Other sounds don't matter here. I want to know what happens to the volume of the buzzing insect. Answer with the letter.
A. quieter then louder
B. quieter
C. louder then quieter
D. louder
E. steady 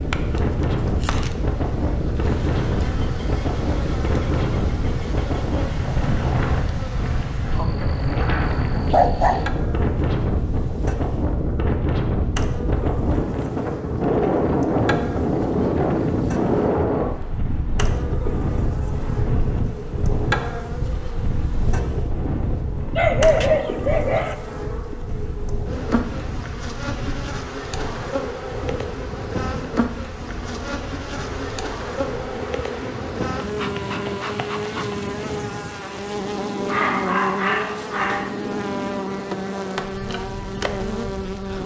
D.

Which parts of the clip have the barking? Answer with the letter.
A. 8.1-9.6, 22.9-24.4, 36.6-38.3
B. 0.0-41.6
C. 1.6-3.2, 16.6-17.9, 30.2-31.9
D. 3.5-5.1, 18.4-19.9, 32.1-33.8
A.